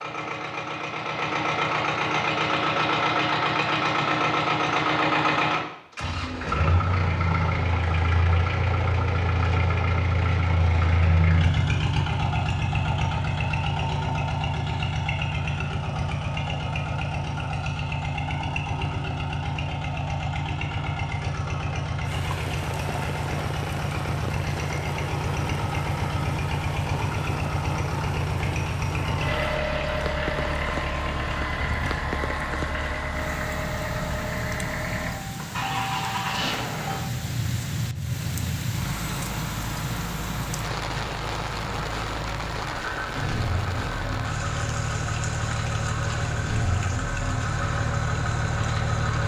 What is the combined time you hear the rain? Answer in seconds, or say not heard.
27 s.